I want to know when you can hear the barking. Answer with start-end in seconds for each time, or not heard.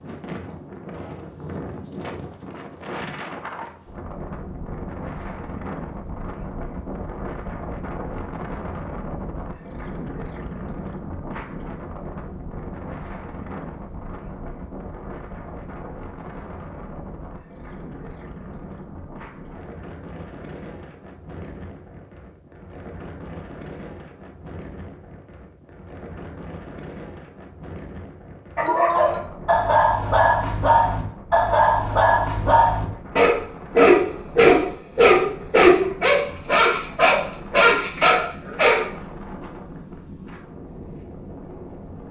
28.6-38.9.